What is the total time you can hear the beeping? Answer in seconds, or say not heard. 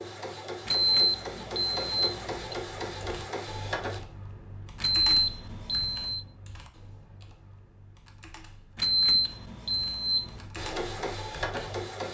5 s.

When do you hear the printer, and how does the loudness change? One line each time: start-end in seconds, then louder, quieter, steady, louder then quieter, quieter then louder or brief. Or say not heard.
0.0-4.0 steady
10.6-12.1 brief.